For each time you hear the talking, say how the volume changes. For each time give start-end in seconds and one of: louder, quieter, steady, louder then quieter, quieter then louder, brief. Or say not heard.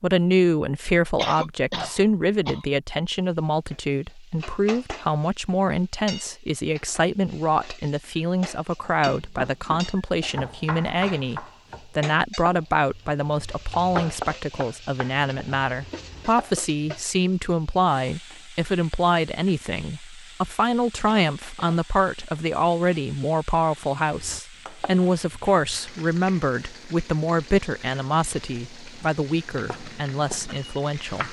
0.0-31.2 steady.